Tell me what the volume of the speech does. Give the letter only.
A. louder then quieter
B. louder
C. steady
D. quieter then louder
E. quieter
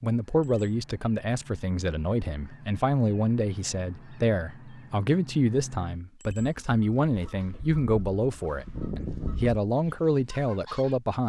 C.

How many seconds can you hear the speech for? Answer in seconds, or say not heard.
11 s.